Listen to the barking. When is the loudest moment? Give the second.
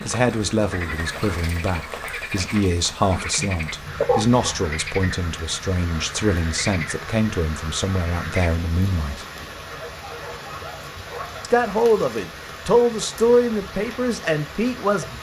4 s.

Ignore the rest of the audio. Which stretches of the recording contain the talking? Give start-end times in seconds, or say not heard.
0.1-9.2, 11.4-15.1.